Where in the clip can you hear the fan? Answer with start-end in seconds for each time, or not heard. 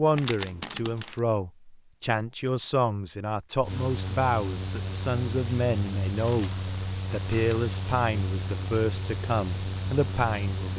3.6-10.7.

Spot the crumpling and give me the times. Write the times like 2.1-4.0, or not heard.
0.1-1.1, 6.2-8.2.